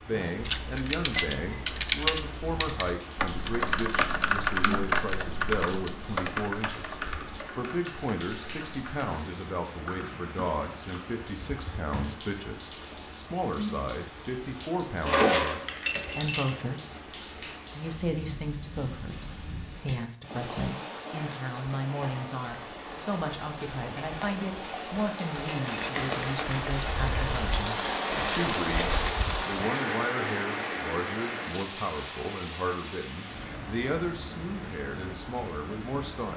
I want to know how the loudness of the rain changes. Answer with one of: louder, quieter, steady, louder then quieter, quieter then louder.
louder.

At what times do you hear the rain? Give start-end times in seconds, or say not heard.
0.0-36.3.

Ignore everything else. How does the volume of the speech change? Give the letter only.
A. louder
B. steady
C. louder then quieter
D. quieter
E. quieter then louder
B.